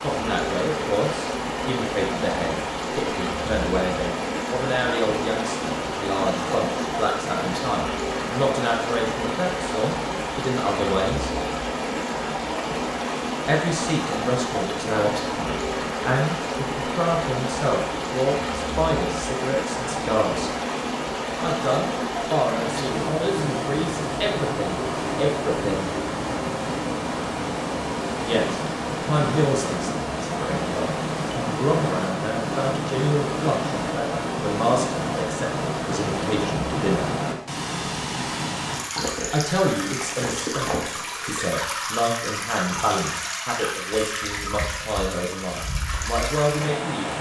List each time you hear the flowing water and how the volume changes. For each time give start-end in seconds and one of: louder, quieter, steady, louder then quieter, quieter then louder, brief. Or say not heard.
0.0-47.1 steady.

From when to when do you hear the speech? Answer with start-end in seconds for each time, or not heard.
0.0-11.3, 13.4-20.5, 21.4-25.9, 28.2-37.0, 39.3-47.1.